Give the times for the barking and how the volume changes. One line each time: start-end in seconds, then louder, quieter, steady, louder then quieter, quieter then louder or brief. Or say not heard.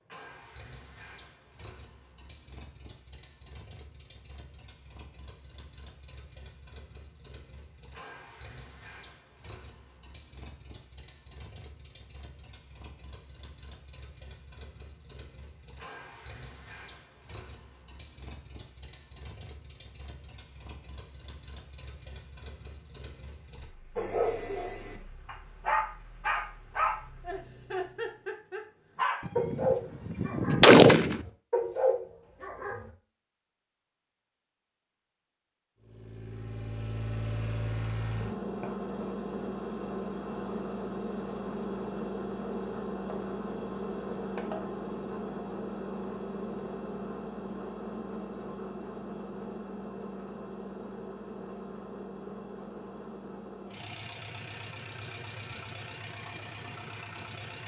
23.9-32.9 steady.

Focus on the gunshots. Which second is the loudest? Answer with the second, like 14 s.
31 s.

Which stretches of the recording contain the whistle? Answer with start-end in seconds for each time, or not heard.
not heard.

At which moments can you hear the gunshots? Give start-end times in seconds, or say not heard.
29.2-31.2.